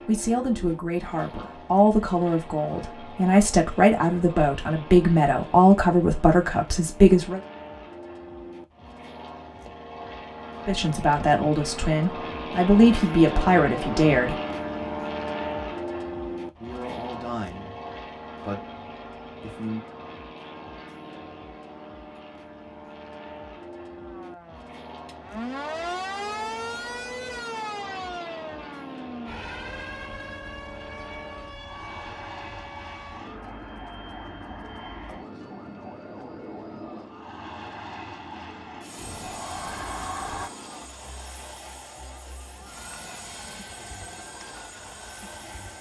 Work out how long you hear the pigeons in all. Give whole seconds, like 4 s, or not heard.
not heard.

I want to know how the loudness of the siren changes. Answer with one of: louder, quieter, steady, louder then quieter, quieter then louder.
quieter.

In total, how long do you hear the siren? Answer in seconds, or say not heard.
22 s.